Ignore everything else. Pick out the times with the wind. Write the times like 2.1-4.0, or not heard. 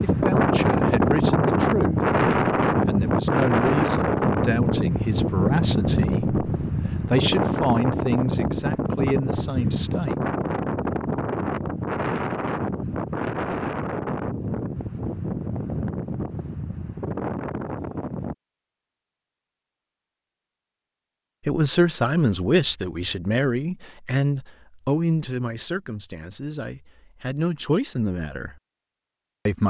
0.0-18.4.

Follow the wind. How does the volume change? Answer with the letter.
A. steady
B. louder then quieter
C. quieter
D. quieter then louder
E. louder
C.